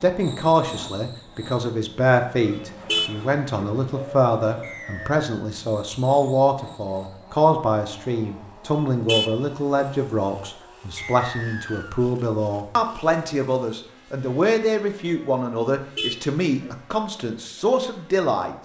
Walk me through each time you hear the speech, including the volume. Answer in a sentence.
The speech can be heard from 0.0 to 18.5 s, at a steady volume.